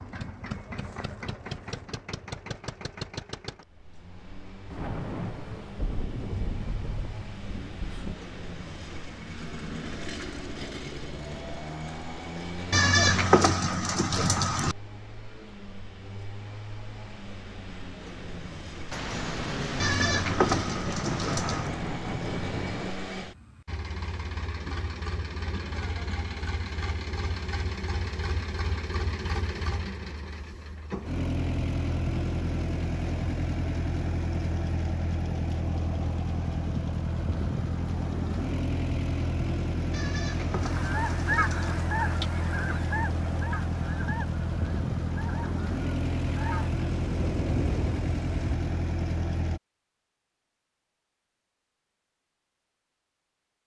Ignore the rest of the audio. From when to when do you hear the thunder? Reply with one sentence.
The thunder can be heard from 4.7 to 8.2 s, from 18.9 to 22.9 s and from 47.0 to 48.5 s.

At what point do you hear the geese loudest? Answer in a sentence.
The loudest moment of the geese is at 41 seconds.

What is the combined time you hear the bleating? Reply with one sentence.
The bleating can be heard for 6 seconds in total.